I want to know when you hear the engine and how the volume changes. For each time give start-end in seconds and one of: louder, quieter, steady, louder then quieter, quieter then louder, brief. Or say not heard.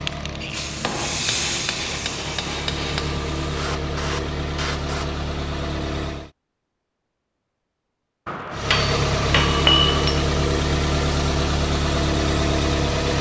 0.0-6.3 louder
8.5-13.1 steady.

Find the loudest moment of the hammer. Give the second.
10 s.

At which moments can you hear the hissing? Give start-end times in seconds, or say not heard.
0.0-5.2.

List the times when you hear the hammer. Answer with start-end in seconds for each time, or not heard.
0.8-3.2, 8.2-10.2.